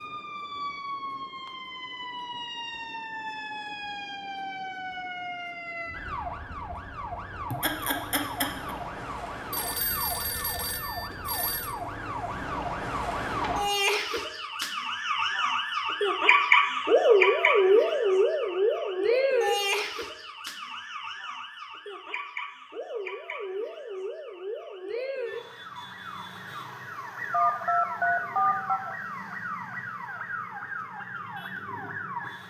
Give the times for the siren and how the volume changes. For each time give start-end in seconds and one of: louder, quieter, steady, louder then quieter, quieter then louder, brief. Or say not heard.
0.0-32.4 louder then quieter.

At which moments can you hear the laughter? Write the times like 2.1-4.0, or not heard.
7.5-8.8.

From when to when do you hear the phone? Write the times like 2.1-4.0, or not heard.
9.5-11.8, 27.3-28.8.